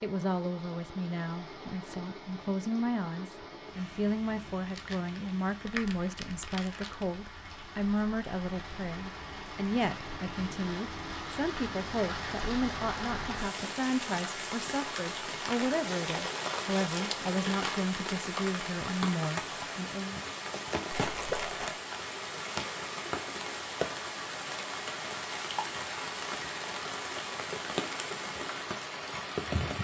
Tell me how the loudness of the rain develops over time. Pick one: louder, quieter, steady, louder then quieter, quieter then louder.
louder.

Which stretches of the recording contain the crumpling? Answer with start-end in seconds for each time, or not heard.
4.7-7.0, 15.8-17.9, 20.9-21.8.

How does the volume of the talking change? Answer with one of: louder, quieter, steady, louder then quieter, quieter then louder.
steady.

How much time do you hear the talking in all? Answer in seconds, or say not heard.
20 s.